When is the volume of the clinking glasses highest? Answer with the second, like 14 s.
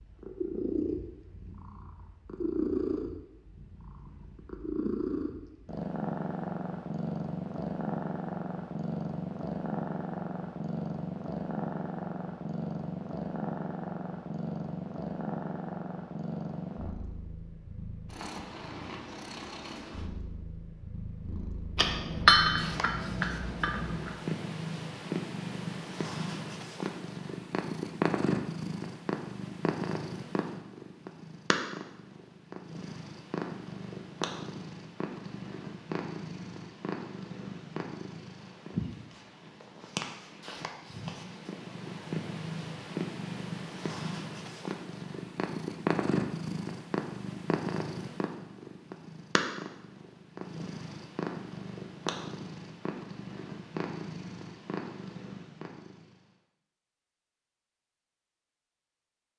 22 s.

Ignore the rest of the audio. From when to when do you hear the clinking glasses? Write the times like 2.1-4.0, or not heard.
21.8-24.1.